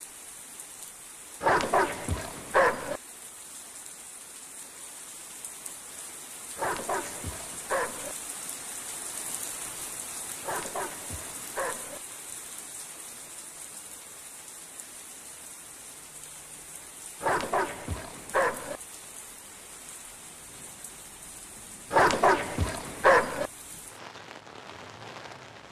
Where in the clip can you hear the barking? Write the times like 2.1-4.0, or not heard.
1.4-3.0, 6.5-8.2, 10.4-12.0, 17.2-18.8, 21.9-23.5.